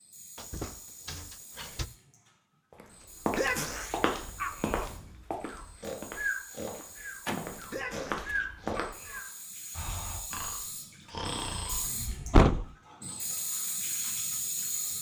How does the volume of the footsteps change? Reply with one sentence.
The volume of the footsteps goes down, then up.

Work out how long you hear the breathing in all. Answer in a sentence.
You can hear the breathing for 7 seconds altogether.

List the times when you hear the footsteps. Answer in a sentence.
You can hear the footsteps from 2.7 to 8.8 s.